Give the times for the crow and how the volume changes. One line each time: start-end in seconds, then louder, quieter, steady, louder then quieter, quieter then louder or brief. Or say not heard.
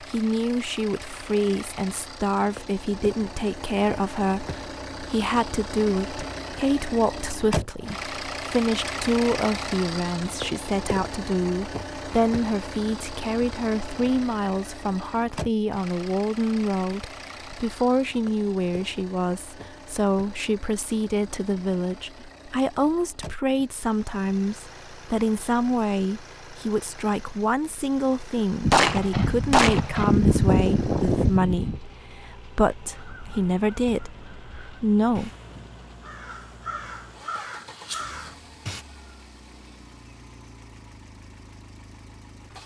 33.0-38.9 louder.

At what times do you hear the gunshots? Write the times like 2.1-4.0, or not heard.
28.6-31.8.